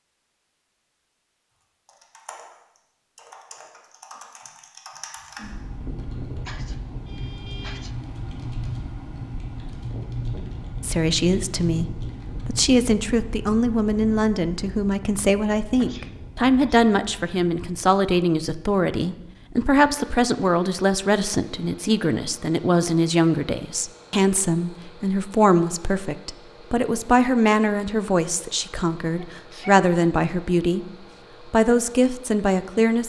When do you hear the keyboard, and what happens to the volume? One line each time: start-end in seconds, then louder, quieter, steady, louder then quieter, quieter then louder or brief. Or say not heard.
1.9-12.7 louder.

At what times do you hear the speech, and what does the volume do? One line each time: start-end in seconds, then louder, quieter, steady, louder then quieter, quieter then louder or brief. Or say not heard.
10.8-30.9 steady
31.4-33.0 brief.